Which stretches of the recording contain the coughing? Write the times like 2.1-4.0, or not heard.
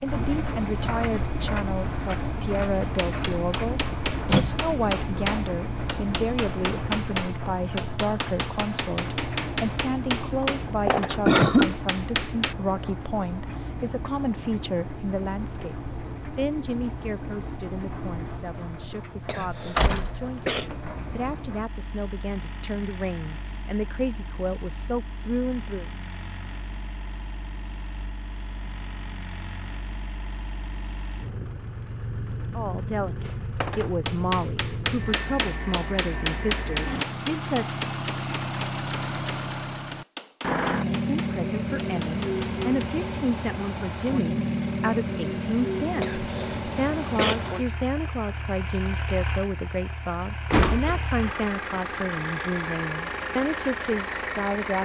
10.4-11.8, 19.2-20.6, 46.0-47.4.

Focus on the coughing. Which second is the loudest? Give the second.
11 s.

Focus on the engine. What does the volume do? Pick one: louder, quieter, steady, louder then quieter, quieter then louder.
quieter then louder.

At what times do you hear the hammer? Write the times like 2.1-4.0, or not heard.
3.0-12.6, 33.2-42.9.